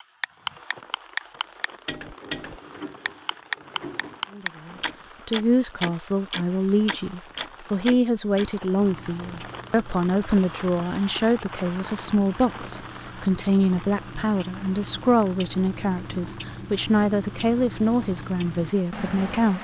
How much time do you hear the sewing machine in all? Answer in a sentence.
You can hear the sewing machine for 2 seconds altogether.